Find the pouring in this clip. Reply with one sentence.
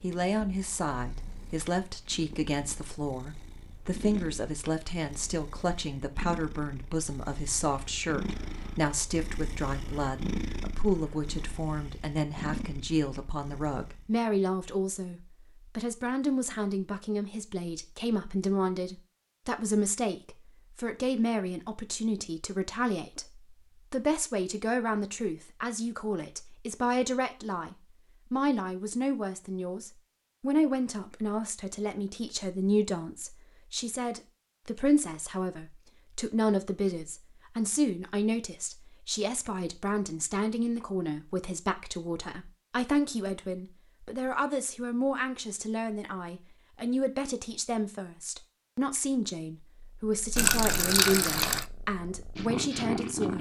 You can hear the pouring from 50.4 to 51.6 s.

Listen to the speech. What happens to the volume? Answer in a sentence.
The volume of the speech stays about the same.